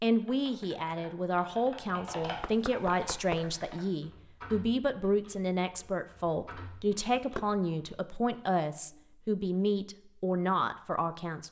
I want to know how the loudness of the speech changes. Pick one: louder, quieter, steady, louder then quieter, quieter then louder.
steady.